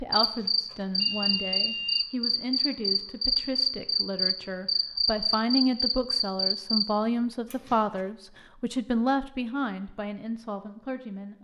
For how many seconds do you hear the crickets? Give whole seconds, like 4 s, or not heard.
7 s.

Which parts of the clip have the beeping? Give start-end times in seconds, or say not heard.
0.2-2.0, 7.5-8.1.